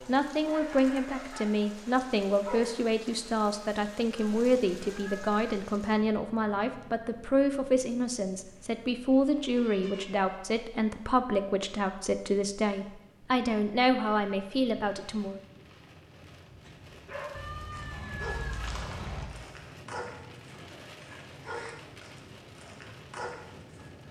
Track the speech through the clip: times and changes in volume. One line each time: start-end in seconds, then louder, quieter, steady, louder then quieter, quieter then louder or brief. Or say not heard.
0.1-15.4 steady.